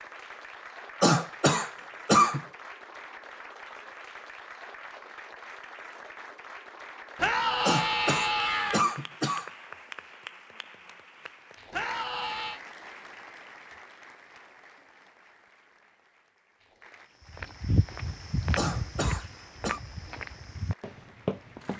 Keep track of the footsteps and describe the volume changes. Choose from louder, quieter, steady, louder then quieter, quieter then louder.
quieter then louder.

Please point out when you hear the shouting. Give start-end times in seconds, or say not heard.
7.2-8.8, 11.7-12.6.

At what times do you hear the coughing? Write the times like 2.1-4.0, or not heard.
1.0-2.5, 7.7-9.5, 18.6-19.8.